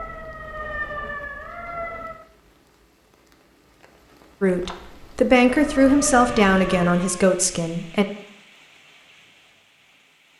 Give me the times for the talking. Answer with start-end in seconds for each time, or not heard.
4.4-8.1.